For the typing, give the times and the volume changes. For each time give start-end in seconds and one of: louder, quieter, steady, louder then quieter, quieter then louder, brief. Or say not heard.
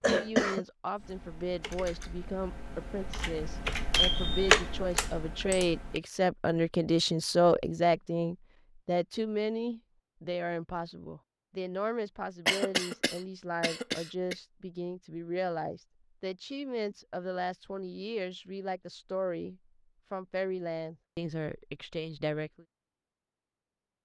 0.9-6.0 louder then quieter.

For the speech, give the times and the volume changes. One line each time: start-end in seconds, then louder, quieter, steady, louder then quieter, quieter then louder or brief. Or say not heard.
0.0-22.6 louder then quieter.